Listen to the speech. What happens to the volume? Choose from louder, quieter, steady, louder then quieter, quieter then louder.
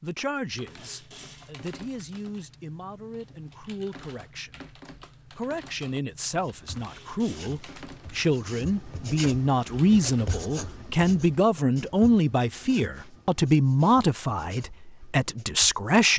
louder.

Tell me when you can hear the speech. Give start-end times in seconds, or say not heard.
0.0-16.1.